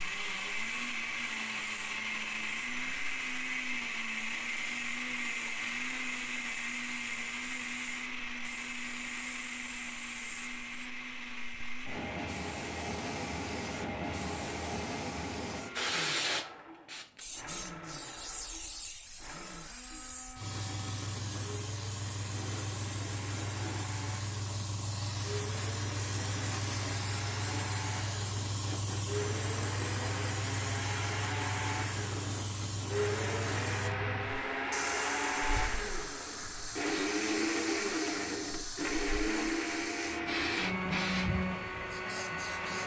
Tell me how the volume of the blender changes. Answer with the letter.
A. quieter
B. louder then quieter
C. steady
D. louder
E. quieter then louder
E.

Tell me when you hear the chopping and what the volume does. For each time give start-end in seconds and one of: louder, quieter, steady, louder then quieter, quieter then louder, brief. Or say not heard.
not heard.